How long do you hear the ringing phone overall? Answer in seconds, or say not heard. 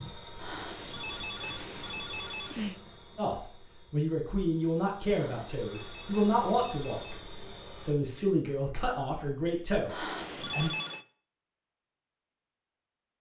6 s.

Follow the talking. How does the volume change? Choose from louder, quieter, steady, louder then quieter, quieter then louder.
steady.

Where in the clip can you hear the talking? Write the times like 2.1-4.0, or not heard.
3.1-10.7.